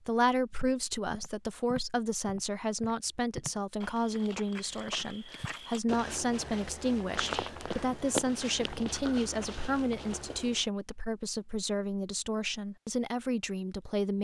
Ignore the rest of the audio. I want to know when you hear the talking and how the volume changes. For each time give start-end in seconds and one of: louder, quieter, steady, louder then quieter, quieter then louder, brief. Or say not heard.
0.1-14.1 steady.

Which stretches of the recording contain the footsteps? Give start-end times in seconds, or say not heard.
0.5-10.7.